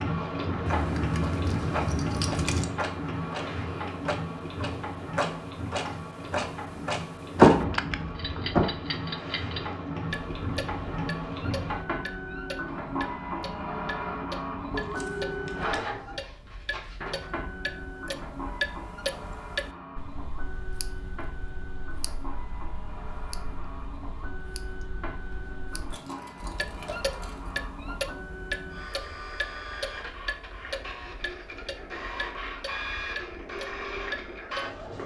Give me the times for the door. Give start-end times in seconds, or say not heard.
7.3-8.7.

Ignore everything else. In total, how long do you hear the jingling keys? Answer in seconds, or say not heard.
5 s.